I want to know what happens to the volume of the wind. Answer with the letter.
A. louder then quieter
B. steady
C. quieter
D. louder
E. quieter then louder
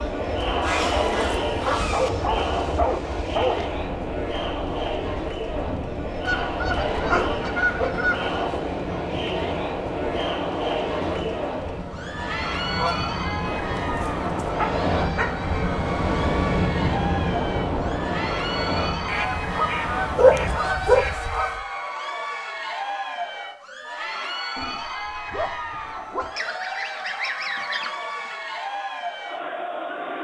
D.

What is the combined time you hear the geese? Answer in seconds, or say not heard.
10 s.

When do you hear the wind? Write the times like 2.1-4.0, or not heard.
0.0-20.7.